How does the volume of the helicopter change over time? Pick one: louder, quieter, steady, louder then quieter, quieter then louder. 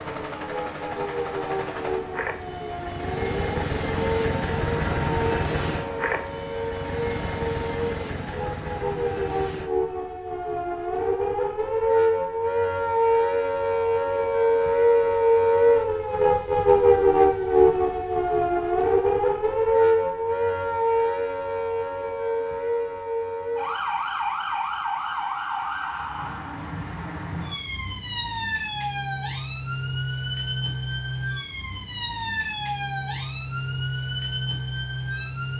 louder then quieter.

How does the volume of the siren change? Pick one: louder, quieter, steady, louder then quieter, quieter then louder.
louder then quieter.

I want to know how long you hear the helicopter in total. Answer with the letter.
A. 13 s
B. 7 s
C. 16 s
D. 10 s
D.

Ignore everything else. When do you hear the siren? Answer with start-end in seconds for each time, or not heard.
0.0-35.5.